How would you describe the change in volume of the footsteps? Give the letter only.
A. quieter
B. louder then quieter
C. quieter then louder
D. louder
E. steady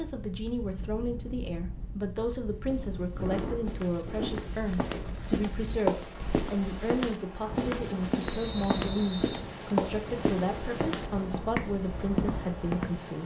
D.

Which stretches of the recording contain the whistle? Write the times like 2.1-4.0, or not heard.
8.2-9.4.